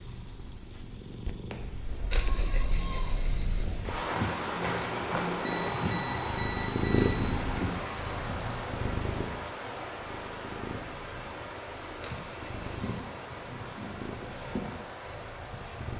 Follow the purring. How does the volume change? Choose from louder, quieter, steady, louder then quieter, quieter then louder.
louder then quieter.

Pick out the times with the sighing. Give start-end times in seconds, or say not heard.
2.1-3.7, 7.0-8.6, 12.0-13.6.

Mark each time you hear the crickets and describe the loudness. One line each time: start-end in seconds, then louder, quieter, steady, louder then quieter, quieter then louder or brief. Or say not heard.
0.0-15.9 quieter.